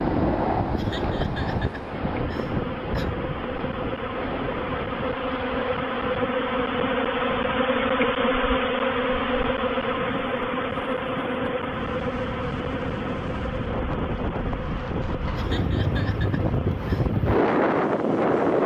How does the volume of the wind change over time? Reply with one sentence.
The loudness of the wind goes down, then up.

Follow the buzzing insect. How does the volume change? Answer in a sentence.
The volume of the buzzing insect goes up, then down.